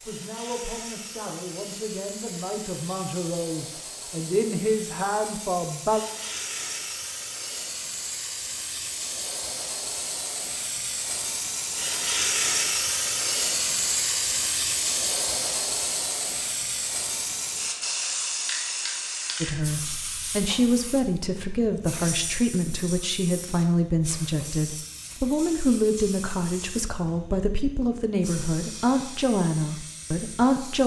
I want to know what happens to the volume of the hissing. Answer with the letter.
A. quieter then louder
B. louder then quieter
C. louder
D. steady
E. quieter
B.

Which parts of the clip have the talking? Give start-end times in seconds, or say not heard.
0.0-6.0, 19.4-30.8.